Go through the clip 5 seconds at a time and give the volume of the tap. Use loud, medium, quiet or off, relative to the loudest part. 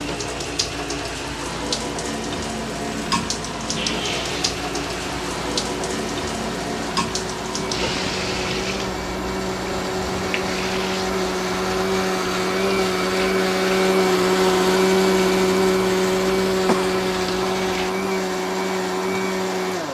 loud, loud, medium, medium.